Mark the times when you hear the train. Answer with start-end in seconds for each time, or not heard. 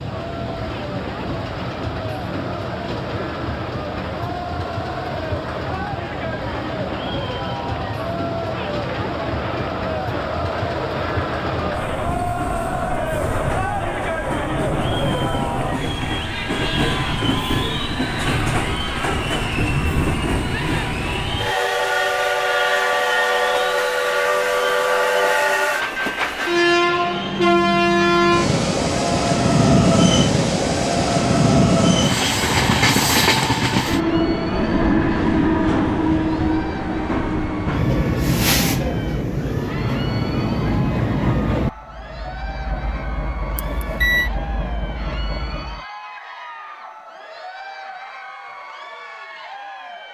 0.0-45.9.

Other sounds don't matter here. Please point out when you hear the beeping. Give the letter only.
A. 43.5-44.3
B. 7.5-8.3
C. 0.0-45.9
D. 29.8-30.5
A.